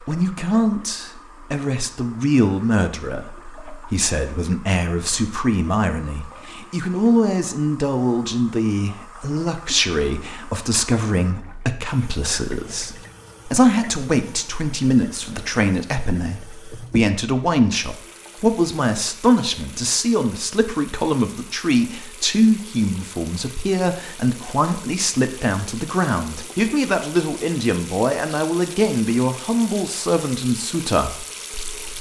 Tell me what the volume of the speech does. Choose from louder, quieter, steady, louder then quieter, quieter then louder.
steady.